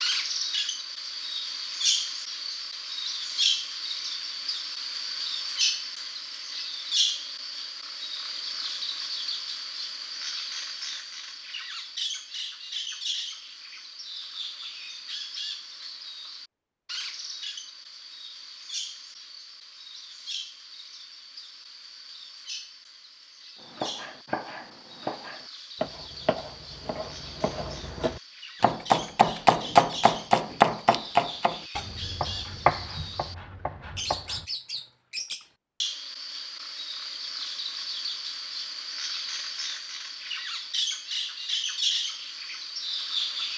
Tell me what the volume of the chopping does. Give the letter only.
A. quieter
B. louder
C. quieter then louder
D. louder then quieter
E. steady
D.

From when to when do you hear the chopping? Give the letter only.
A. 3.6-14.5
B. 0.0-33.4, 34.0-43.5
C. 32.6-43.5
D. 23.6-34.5
D.